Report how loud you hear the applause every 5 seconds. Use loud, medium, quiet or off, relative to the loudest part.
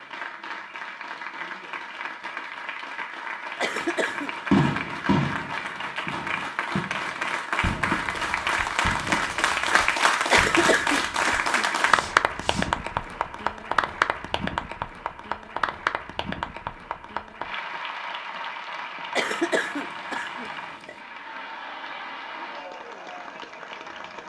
medium, loud, loud, medium, quiet.